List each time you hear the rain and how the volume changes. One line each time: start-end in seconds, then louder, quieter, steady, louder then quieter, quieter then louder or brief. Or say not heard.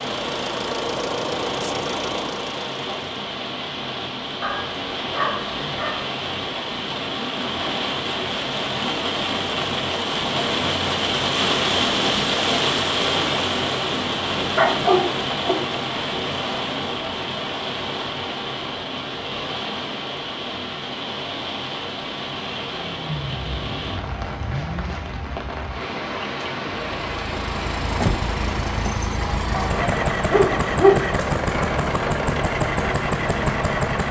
0.0-34.0 louder then quieter.